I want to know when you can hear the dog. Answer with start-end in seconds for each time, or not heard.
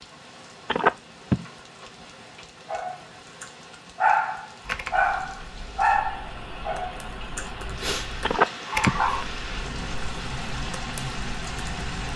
2.6-9.2.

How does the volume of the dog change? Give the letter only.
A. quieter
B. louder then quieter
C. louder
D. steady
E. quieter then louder
A.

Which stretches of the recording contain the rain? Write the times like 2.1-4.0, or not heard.
0.0-12.1.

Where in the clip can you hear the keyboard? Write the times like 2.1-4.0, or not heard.
4.6-12.1.